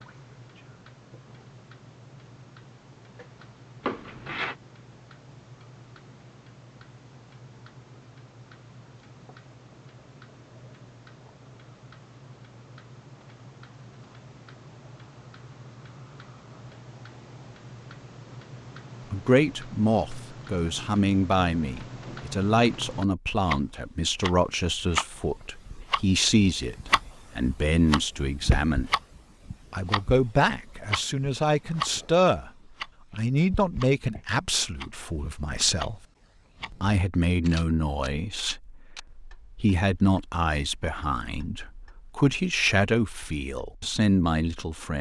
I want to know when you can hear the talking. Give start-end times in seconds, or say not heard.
19.1-28.9, 29.7-32.5, 33.1-36.0, 36.7-44.9.